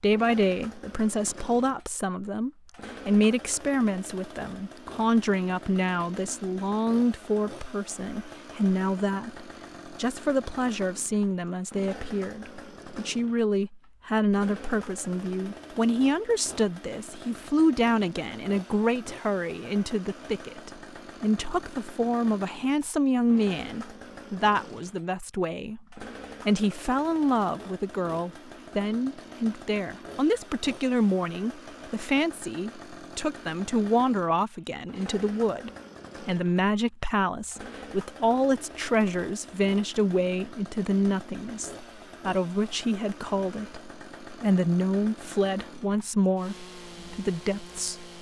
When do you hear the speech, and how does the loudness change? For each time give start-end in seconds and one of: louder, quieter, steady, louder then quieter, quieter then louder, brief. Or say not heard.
0.0-48.0 steady.